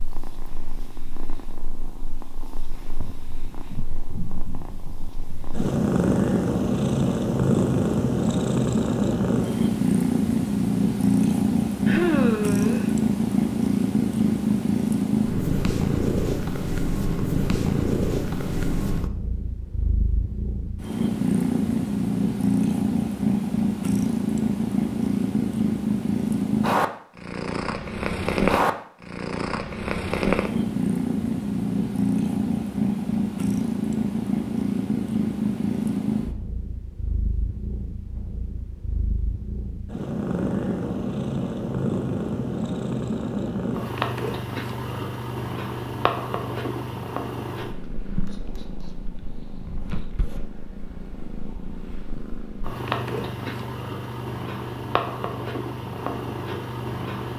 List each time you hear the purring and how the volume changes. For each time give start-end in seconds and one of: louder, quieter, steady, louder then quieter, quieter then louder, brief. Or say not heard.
0.0-57.3 quieter.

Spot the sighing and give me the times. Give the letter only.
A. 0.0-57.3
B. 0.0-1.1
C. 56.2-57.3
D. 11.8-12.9
D.